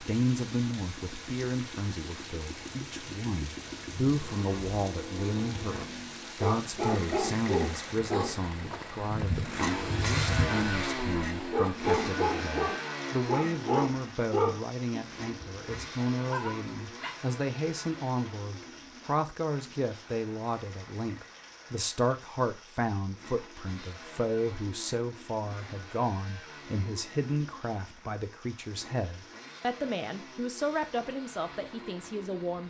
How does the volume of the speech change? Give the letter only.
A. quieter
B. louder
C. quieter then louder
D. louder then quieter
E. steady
E.